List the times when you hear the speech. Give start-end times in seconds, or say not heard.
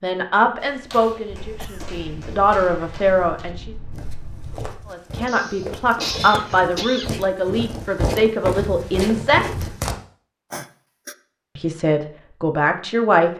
0.0-3.8, 4.9-9.7, 11.6-13.3.